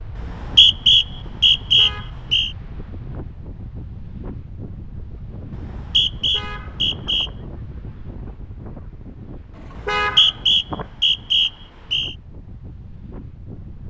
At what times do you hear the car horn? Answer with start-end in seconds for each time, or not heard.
1.6-2.1, 6.2-7.3, 9.6-10.8.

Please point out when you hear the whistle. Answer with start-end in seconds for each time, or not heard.
0.1-2.5, 5.5-7.3, 9.8-12.2.